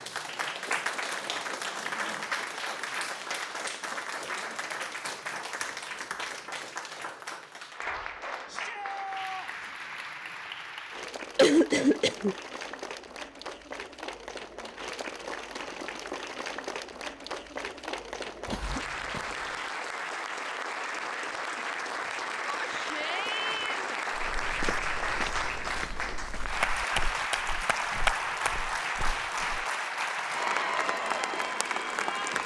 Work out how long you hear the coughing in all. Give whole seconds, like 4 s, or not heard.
2 s.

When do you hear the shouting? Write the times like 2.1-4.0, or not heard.
8.4-9.7, 22.4-24.0.